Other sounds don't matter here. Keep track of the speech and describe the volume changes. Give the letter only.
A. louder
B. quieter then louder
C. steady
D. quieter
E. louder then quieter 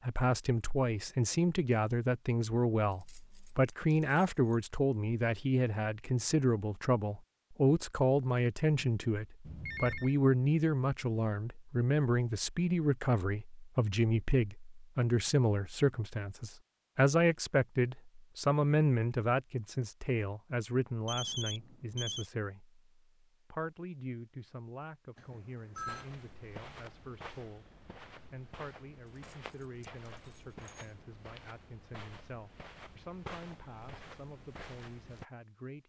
D.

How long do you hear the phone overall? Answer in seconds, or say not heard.
3 s.